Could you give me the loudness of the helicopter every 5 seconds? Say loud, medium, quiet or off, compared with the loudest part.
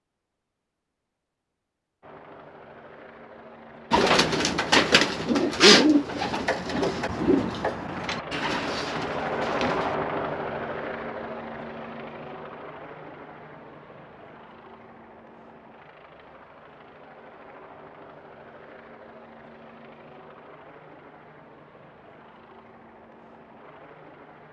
quiet, loud, medium, quiet, quiet.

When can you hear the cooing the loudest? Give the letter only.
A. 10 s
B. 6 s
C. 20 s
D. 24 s
B.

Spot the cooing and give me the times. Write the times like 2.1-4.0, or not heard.
3.9-9.9.